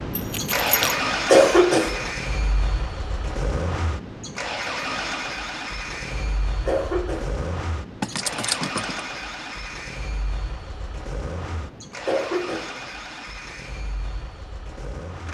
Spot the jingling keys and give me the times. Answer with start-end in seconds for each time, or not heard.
0.1-0.9, 8.0-9.1.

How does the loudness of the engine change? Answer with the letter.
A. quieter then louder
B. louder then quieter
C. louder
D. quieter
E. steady
D.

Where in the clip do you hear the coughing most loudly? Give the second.
1 s.